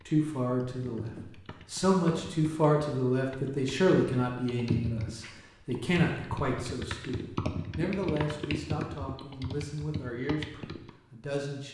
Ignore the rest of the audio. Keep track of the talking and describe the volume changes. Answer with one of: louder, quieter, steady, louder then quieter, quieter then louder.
quieter.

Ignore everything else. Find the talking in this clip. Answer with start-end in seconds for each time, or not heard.
0.1-11.6.